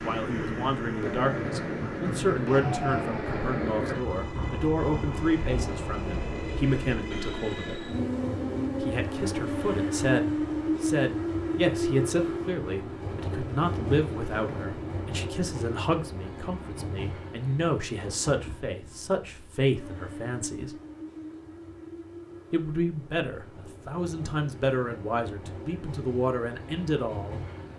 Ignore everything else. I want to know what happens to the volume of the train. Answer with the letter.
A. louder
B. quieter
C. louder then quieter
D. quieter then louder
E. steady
B.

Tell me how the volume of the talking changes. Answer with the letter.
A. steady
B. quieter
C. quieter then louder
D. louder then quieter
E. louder
A.